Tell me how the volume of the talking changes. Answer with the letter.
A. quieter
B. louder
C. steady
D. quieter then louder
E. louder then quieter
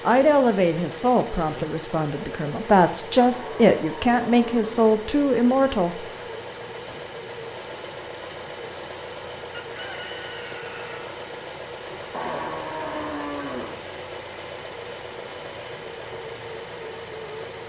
D.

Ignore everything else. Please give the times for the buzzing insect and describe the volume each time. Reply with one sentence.
The buzzing insect can't be heard in this clip.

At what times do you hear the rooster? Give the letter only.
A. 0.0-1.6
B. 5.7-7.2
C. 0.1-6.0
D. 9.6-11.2
D.